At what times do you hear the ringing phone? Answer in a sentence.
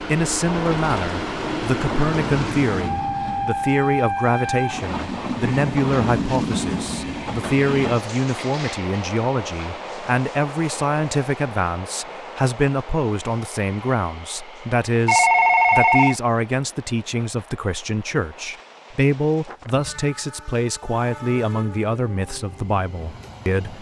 You can hear the ringing phone from 15.1 to 16.1 s.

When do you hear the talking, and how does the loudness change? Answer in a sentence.
The talking can be heard from 0.1 to 23.7 s, at a steady volume.